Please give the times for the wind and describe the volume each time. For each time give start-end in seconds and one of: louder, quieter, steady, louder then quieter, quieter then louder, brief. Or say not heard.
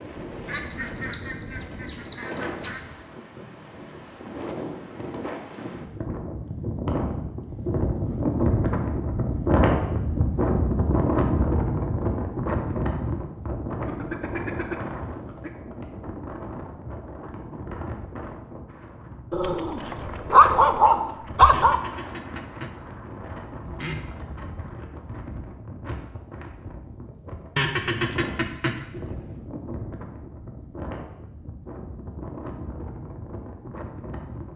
0.0-34.5 louder then quieter.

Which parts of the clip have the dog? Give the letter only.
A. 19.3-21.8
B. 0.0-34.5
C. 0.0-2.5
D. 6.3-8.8
A.